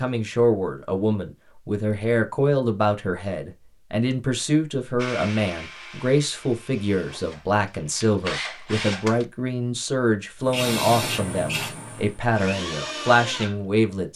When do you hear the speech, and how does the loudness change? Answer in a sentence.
The speech can be heard from 0.0 to 14.1 s, at a steady volume.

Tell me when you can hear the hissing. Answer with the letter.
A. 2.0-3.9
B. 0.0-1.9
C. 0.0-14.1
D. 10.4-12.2
D.